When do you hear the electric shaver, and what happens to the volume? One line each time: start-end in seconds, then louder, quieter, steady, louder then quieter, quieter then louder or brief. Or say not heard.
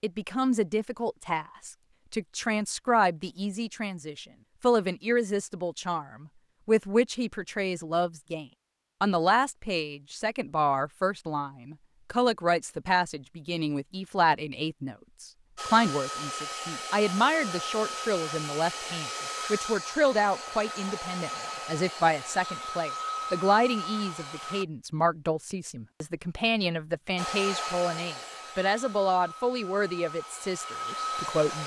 not heard.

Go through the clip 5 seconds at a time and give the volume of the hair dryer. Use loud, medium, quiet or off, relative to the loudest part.
off, off, off, loud, loud, loud, loud.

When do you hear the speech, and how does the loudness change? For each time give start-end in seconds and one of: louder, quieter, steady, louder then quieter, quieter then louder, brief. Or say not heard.
0.0-31.6 steady.